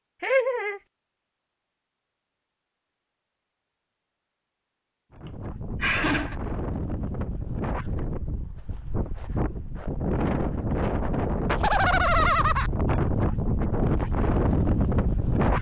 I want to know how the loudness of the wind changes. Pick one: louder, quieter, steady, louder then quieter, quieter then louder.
louder.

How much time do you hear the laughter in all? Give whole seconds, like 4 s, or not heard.
3 s.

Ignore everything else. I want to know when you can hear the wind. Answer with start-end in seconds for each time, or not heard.
5.1-15.5.